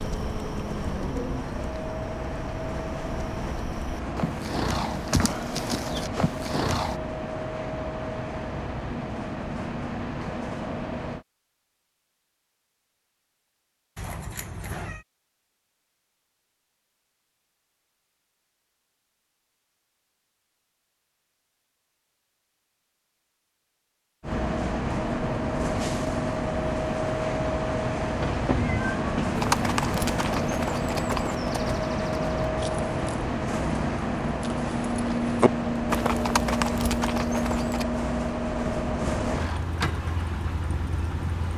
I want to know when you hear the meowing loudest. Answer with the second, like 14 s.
29 s.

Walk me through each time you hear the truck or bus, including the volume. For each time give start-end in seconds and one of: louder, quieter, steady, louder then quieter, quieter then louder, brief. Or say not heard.
0.0-11.2 steady
24.2-41.5 steady.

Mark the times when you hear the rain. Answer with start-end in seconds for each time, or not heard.
not heard.